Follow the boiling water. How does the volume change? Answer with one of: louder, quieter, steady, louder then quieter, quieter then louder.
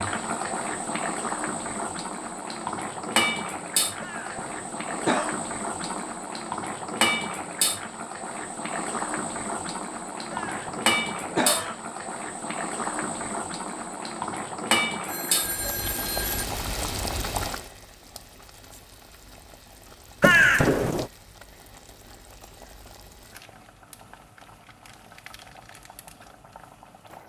quieter.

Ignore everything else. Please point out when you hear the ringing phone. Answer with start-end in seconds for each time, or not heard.
15.1-16.4.